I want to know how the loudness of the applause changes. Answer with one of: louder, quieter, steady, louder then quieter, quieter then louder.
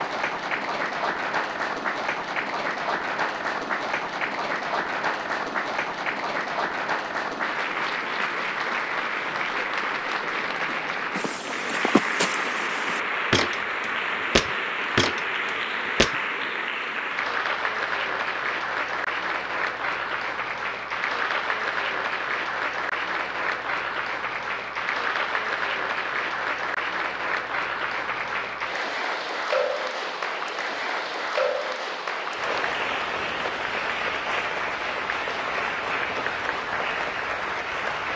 steady.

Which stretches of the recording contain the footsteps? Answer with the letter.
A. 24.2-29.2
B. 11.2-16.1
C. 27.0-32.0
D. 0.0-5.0
B.